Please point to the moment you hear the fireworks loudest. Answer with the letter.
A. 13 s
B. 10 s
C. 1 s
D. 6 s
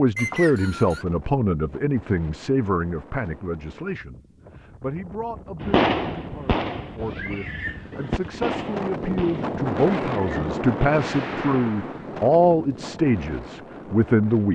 D.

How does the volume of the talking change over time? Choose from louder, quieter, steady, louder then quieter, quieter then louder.
quieter then louder.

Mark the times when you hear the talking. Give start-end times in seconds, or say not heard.
0.0-14.5.